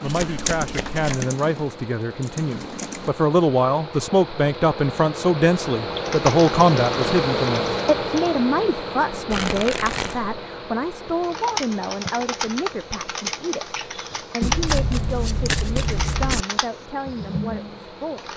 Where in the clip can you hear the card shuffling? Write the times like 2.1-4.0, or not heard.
0.1-1.2, 9.3-10.3, 14.4-16.4.